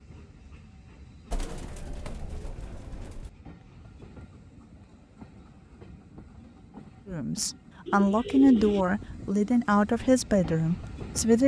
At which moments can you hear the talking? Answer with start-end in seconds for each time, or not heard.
7.0-11.4.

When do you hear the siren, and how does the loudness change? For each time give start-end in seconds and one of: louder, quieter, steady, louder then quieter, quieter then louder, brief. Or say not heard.
not heard.